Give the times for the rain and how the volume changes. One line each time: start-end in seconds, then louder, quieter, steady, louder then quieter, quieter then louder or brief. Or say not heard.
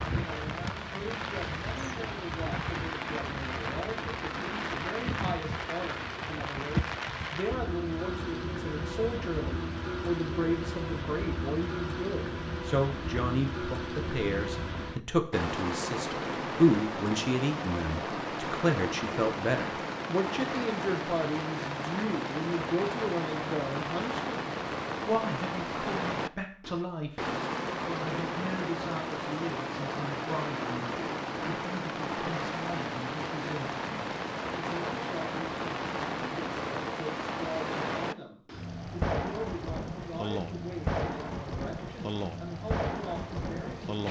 0.0-44.0 steady.